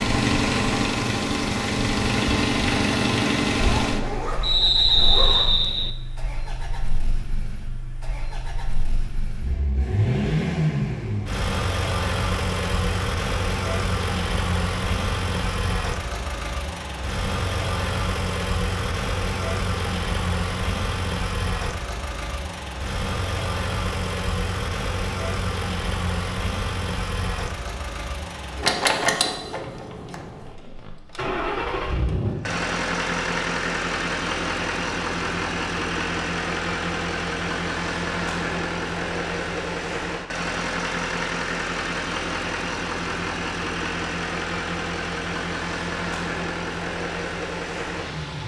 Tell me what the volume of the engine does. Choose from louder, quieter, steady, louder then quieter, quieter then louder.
steady.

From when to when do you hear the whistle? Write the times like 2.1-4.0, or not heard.
4.4-5.9.